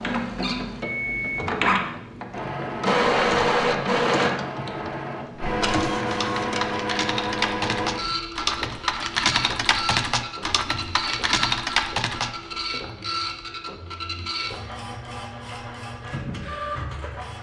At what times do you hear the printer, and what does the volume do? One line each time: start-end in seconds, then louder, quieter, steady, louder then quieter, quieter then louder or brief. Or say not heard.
0.0-17.3 quieter.